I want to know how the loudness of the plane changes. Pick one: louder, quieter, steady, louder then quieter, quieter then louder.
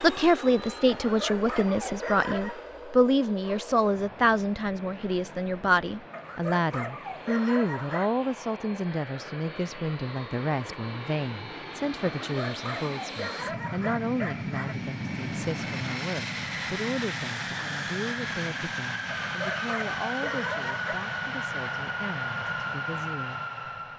louder.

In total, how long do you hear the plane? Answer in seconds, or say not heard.
24 s.